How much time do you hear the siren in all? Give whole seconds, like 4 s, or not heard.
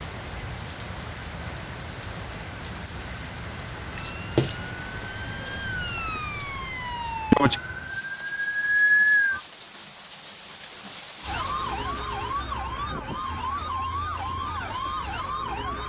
10 s.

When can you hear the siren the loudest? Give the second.
9 s.